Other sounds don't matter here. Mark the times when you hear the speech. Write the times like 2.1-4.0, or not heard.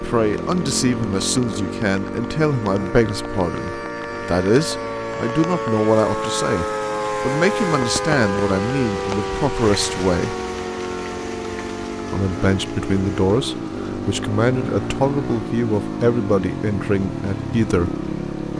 0.0-10.3, 12.1-18.5.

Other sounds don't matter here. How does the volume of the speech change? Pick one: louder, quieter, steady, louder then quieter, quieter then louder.
steady.